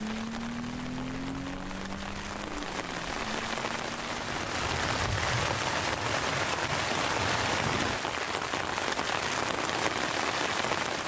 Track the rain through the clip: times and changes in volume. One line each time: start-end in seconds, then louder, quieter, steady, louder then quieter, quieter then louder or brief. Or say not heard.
0.0-11.0 louder.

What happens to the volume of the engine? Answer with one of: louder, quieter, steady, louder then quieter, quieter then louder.
quieter.